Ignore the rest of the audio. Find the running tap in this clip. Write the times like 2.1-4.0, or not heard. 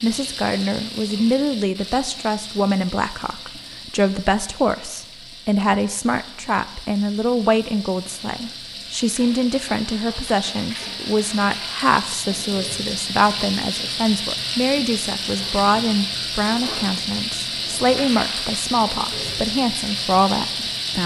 0.0-21.0.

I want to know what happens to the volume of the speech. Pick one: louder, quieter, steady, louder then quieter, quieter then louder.
steady.